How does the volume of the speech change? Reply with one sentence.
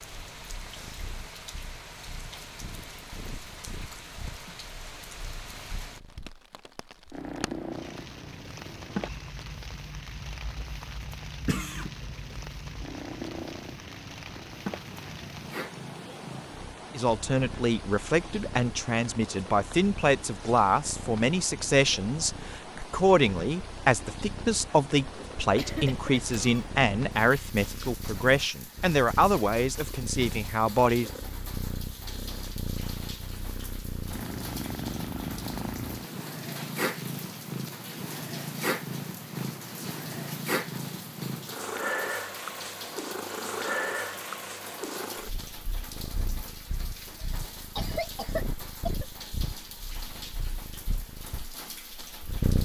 The loudness of the speech stays about the same.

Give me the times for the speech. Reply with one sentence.
The speech can be heard from 16.9 to 31.1 s.